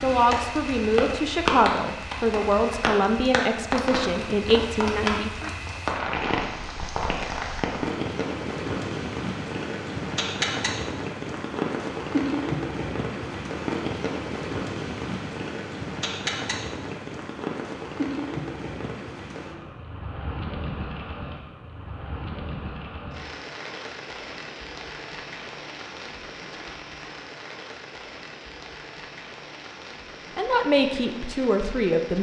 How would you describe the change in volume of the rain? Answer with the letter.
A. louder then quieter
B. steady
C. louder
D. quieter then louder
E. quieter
E.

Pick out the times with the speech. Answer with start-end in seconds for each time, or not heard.
0.0-5.5, 30.4-32.1.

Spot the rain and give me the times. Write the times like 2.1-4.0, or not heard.
0.0-32.1.